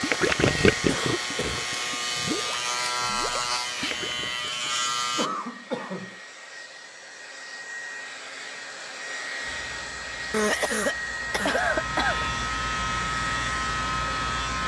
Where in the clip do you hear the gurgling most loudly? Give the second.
1 s.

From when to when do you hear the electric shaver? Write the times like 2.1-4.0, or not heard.
0.0-5.3, 9.4-14.6.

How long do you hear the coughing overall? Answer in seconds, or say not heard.
4 s.